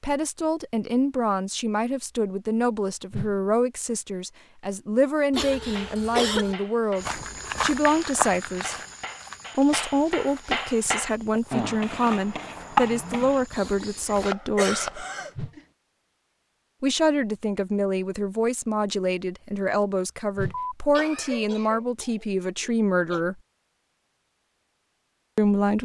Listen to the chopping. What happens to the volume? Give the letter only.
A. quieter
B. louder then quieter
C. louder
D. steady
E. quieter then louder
B.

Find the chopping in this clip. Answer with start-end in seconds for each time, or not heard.
5.5-15.7.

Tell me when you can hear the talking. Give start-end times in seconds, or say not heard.
0.0-8.8, 9.6-15.0, 16.8-23.4, 25.4-25.8.